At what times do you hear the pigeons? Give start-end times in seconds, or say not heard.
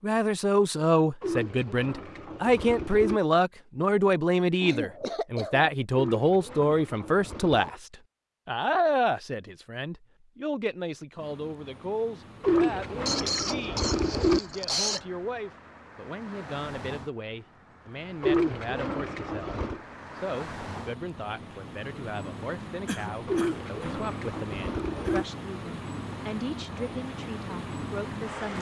1.2-3.2, 5.9-7.8, 12.4-14.4, 18.2-19.8, 23.2-25.2.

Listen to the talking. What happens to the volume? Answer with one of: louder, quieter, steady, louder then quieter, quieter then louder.
quieter.